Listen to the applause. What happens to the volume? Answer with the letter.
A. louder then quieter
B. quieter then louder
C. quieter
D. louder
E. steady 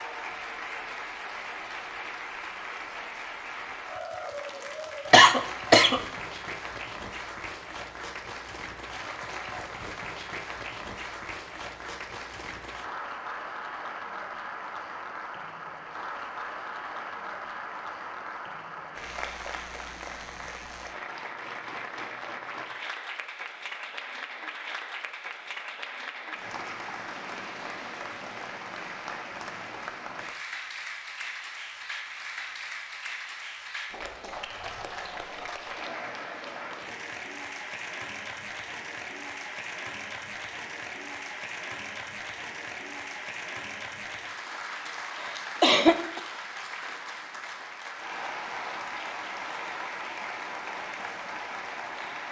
E.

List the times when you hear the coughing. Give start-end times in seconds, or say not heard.
5.1-6.0, 45.6-46.2.